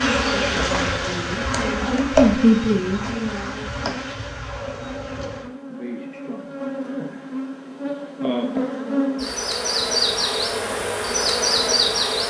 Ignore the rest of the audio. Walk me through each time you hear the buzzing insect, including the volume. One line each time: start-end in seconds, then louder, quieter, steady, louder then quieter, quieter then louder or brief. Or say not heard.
0.0-12.2 quieter then louder.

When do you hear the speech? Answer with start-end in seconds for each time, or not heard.
0.0-4.0.